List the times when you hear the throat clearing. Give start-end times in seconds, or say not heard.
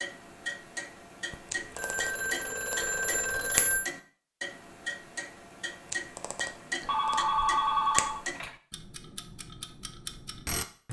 not heard.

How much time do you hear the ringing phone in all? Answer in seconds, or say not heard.
4 s.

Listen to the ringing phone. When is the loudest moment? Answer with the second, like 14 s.
8 s.